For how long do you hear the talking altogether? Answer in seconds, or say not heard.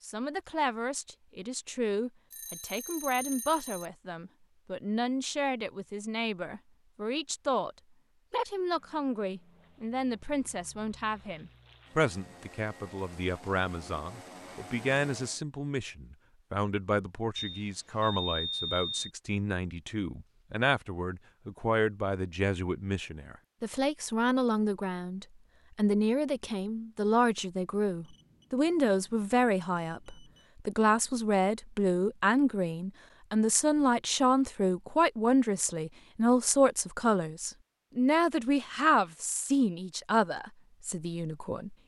42 s.